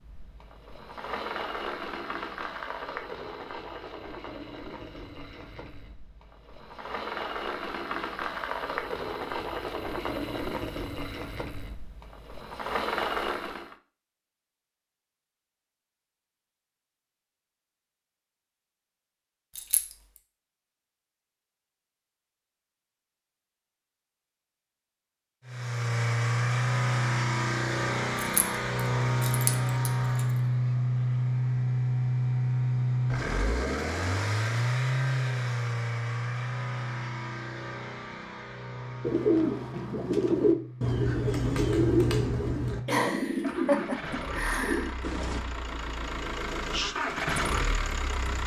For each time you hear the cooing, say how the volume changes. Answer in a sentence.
The cooing can be heard from 39.0 to 45.4 s, getting quieter.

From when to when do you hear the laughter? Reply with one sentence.
The laughter can be heard from 42.9 to 45.0 s.